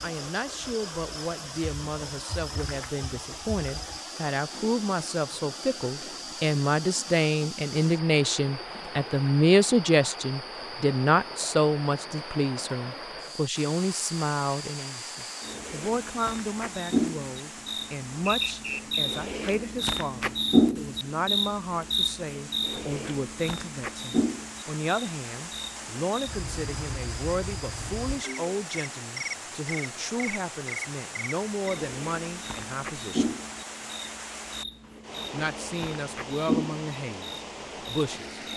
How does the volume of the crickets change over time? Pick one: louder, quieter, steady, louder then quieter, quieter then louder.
louder then quieter.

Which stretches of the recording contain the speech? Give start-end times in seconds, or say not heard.
0.0-33.4, 35.3-38.4.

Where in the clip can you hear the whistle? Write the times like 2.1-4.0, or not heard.
18.2-19.0.